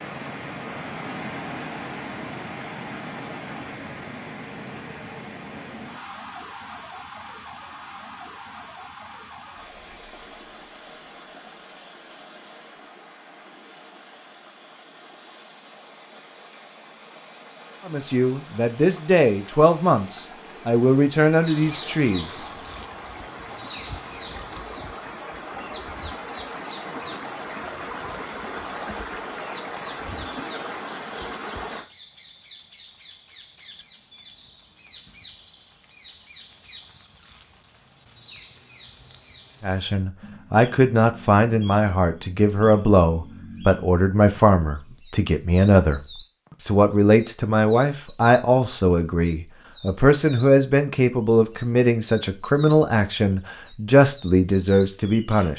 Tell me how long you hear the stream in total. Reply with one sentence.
You can hear the stream for 32 seconds altogether.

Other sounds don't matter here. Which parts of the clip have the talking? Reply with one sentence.
The talking can be heard from 17.9 to 22.4 s, from 39.6 to 46.0 s and from 46.6 to 55.5 s.